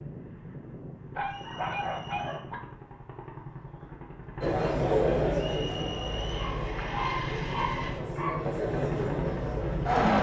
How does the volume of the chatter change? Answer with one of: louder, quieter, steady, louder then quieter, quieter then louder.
quieter then louder.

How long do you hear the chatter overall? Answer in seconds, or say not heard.
6 s.